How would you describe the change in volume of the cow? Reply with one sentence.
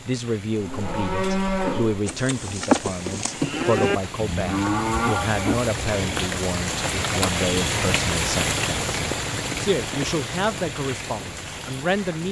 The volume of the cow stays about the same.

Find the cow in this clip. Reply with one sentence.
You can hear the cow from 0.6 to 6.2 s.